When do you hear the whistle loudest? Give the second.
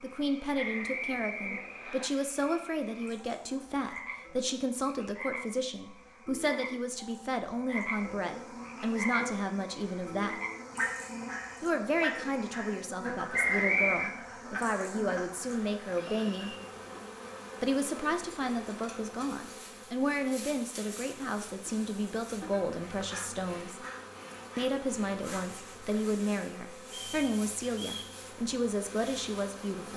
14 s.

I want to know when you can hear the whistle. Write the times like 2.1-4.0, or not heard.
0.6-2.1, 13.3-14.2, 26.9-28.1.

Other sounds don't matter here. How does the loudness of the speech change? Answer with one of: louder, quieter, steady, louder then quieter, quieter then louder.
steady.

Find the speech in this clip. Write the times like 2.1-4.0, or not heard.
0.0-10.4, 11.6-16.6, 17.6-23.8, 24.6-29.9.